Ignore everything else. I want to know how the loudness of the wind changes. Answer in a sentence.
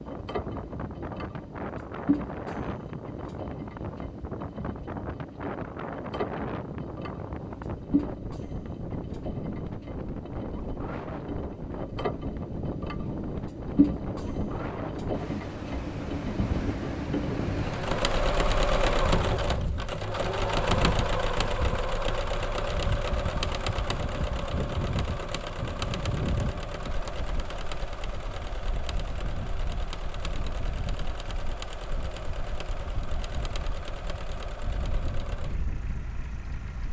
The loudness of the wind goes down.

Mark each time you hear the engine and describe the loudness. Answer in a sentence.
The engine can be heard from 0.0 to 36.8 s, getting louder then quieter.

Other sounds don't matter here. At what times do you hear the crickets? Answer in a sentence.
You can't hear the crickets here.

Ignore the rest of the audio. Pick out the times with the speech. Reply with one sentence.
You can't hear the speech here.